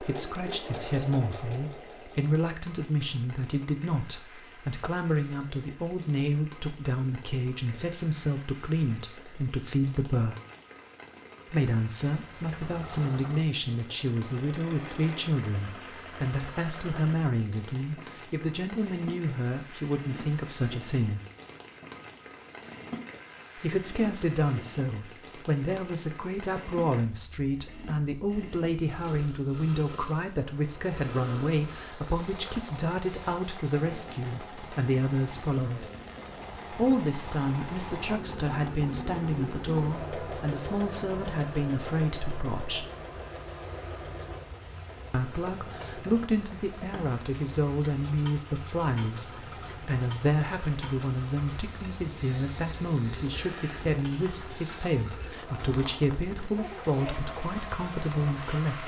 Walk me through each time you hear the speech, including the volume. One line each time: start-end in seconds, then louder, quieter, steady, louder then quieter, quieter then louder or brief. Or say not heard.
0.0-10.3 steady
11.5-21.2 steady
23.6-35.9 steady
36.7-42.9 steady
45.1-58.8 steady.